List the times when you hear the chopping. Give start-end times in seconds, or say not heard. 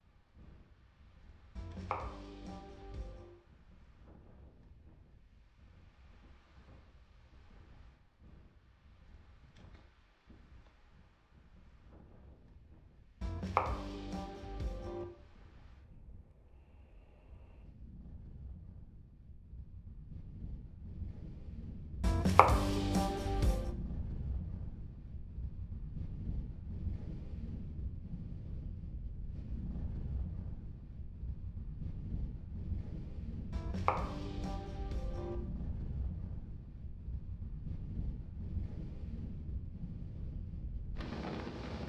1.6-3.3, 13.2-15.1, 22.0-23.7, 33.5-35.4.